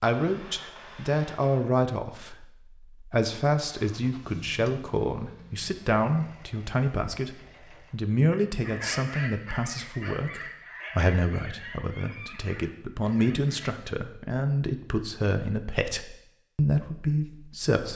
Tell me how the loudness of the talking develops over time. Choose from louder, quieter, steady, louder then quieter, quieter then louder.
steady.